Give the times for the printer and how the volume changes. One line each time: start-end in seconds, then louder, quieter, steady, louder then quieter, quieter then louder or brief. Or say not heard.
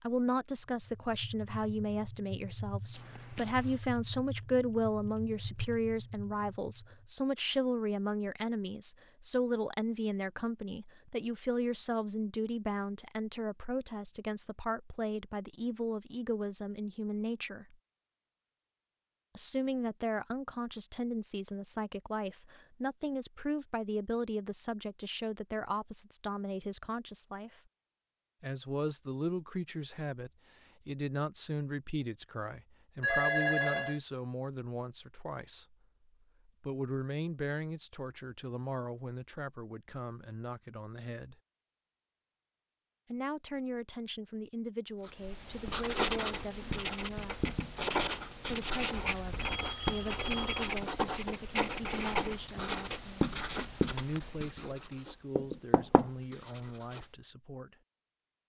not heard.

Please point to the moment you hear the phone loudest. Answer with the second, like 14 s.
33 s.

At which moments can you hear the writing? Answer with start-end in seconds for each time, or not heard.
45.0-57.0.